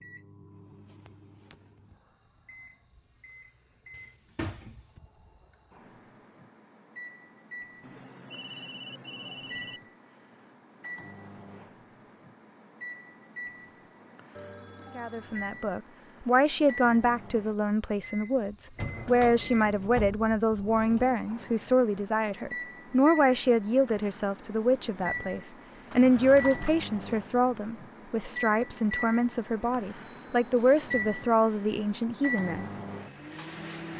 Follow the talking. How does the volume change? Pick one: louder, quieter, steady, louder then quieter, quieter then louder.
steady.